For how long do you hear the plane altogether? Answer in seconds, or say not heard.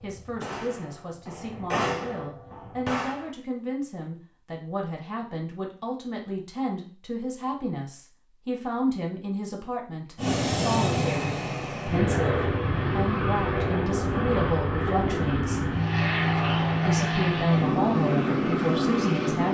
9 s.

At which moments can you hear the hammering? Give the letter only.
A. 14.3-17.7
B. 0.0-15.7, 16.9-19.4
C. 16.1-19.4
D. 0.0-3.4
D.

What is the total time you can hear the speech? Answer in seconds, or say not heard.
18 s.